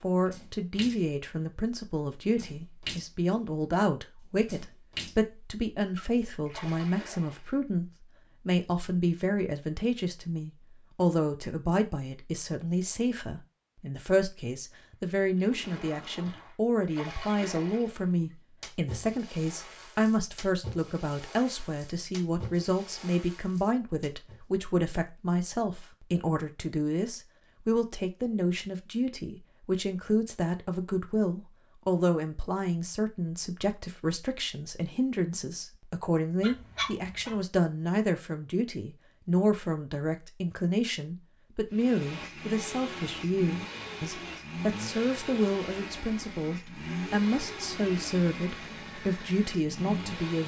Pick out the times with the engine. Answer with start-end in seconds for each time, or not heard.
41.7-50.4.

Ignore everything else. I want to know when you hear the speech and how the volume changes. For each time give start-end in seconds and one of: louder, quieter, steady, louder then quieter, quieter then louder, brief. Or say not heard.
0.0-50.4 steady.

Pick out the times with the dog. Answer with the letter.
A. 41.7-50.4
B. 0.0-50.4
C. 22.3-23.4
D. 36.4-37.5
D.